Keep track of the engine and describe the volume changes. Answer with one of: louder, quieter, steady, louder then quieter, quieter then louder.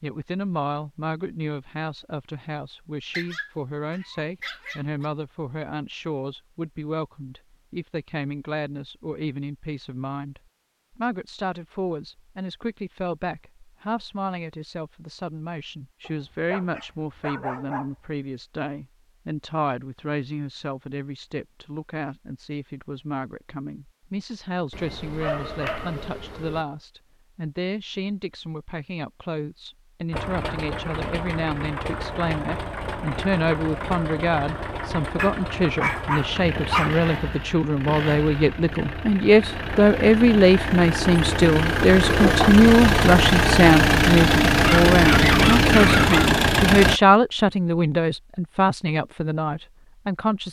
louder.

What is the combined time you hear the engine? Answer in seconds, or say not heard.
17 s.